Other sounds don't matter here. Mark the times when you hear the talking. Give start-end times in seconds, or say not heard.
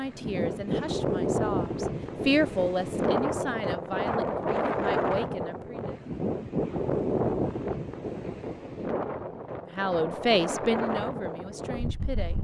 0.0-6.0, 9.8-12.3.